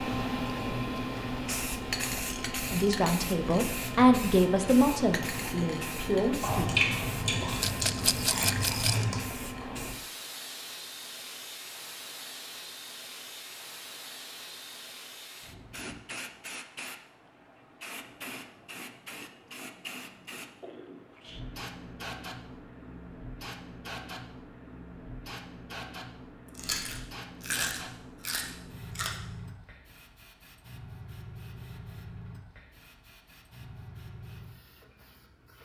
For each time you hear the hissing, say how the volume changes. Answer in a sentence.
The hissing can be heard from 0.0 to 35.6 s, getting quieter.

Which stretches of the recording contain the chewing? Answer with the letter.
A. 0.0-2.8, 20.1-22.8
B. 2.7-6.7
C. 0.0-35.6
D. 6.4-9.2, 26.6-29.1
D.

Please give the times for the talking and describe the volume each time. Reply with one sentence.
The talking can be heard from 2.7 to 6.7 s, getting louder then quieter.